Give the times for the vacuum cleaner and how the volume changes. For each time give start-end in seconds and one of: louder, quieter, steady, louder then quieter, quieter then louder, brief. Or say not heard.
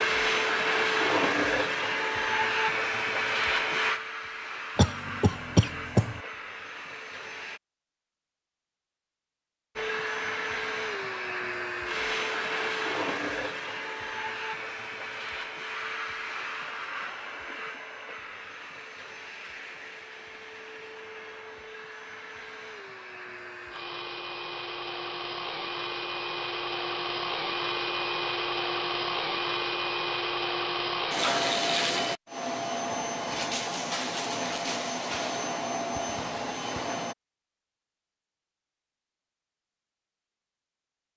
0.0-7.6 quieter
9.8-37.1 quieter then louder.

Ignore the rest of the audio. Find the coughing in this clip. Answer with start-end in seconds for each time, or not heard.
4.8-6.2.